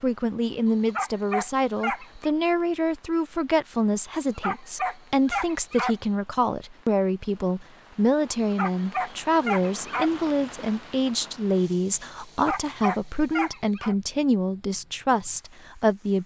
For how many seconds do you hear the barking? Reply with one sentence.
You can hear the barking for 7 seconds altogether.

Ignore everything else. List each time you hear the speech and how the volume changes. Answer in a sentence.
The speech can be heard from 0.0 to 16.2 s, at a steady volume.